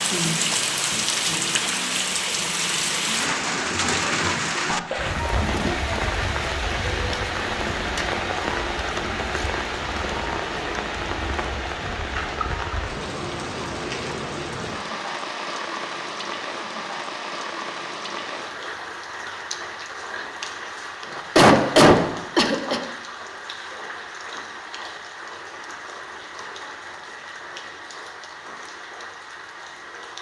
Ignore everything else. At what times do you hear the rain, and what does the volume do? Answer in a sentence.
You can hear the rain from 0.0 to 30.1 s, getting quieter.